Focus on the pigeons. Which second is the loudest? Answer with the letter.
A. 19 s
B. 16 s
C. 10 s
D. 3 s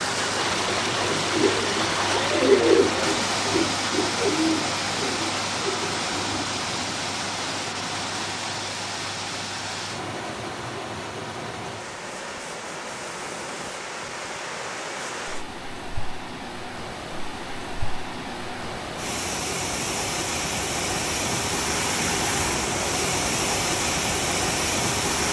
D.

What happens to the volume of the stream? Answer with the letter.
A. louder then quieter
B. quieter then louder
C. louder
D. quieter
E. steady
B.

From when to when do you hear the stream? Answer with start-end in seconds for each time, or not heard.
0.0-25.2.